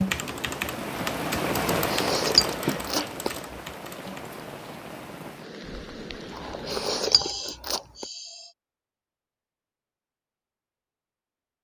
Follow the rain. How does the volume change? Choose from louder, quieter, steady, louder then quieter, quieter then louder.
quieter.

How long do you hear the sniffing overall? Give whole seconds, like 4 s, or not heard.
2 s.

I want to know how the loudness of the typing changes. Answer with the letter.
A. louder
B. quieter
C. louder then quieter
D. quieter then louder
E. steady
B.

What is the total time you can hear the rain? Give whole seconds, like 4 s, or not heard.
7 s.